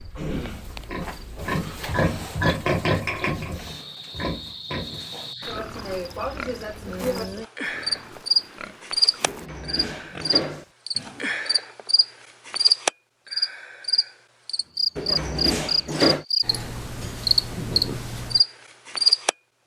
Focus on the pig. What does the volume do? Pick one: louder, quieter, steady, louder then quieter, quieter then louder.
quieter.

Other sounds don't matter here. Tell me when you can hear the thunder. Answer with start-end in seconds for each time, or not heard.
not heard.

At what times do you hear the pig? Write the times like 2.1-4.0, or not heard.
0.0-11.6.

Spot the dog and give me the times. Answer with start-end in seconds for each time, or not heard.
not heard.